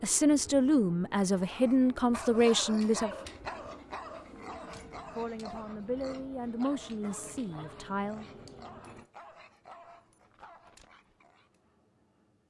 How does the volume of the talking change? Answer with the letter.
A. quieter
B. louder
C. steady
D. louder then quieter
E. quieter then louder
A.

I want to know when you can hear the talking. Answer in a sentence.
You can hear the talking from 0.0 to 3.1 s and from 5.1 to 8.3 s.